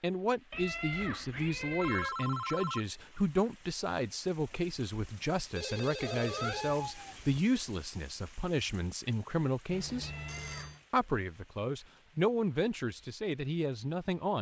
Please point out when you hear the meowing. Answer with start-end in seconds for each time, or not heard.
0.5-2.1, 6.0-7.4, 10.0-10.8.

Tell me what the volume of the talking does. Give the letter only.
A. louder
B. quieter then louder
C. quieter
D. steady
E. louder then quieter
D.